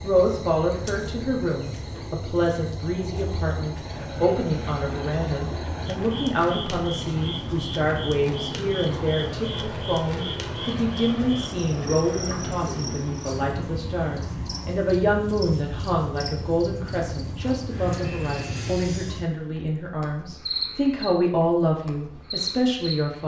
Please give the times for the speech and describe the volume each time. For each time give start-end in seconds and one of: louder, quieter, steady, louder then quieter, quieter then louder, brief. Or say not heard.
0.0-23.2 steady.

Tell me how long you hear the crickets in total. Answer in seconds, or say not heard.
23 s.